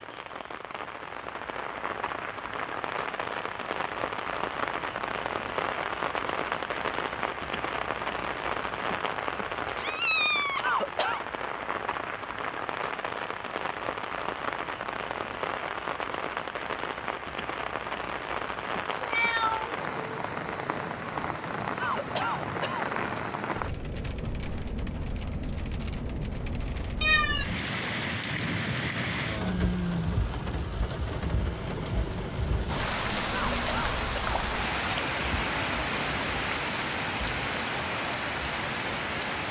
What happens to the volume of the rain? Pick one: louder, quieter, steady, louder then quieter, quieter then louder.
steady.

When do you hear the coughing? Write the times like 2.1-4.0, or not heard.
10.6-11.2, 21.8-22.9, 33.2-34.4.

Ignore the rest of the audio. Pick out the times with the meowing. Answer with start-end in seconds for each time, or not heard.
9.8-11.2, 18.9-19.8, 27.0-27.5.